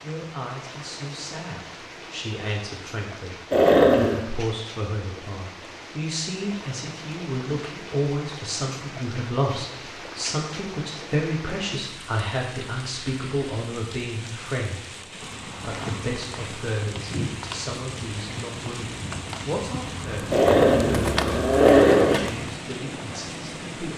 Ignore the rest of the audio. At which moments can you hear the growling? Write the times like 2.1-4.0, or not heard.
3.5-4.2, 20.3-22.2.